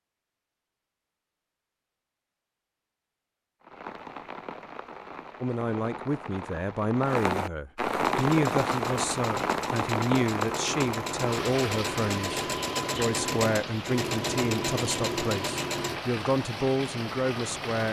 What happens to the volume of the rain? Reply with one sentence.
The volume of the rain goes up, then down.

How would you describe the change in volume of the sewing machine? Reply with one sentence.
The volume of the sewing machine goes up.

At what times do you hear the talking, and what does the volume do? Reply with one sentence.
The talking can be heard from 5.4 to 17.8 s, at a steady volume.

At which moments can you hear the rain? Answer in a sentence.
The rain can be heard from 3.6 to 17.8 s.